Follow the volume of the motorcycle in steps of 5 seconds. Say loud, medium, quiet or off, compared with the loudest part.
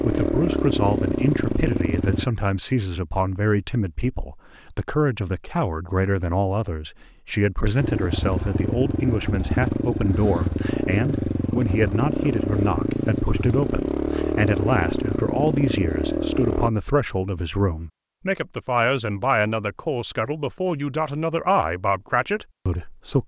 loud, loud, loud, loud, off.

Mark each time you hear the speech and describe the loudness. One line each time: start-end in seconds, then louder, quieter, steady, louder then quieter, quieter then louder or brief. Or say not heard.
0.0-23.2 steady.